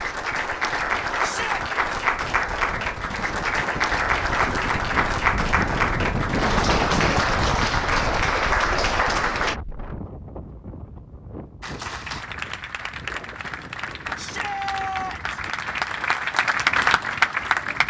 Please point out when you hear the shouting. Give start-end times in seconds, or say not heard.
1.2-1.6, 14.2-15.4.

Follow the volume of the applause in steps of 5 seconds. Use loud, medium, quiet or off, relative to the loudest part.
loud, loud, medium, loud.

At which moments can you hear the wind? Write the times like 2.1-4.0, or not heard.
0.0-17.8.